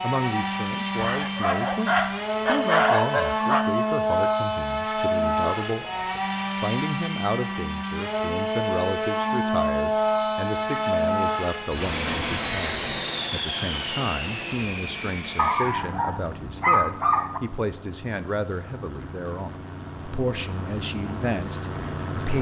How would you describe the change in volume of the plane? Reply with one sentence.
The volume of the plane goes down.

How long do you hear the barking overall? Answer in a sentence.
The barking can be heard for 5 seconds in total.